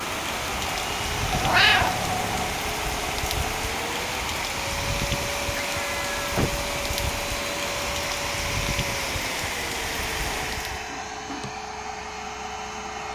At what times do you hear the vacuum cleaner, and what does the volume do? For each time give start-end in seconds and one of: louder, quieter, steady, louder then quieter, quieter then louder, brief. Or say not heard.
0.0-13.1 steady.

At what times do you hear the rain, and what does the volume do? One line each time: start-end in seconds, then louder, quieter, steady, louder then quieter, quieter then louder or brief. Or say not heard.
0.0-10.9 steady.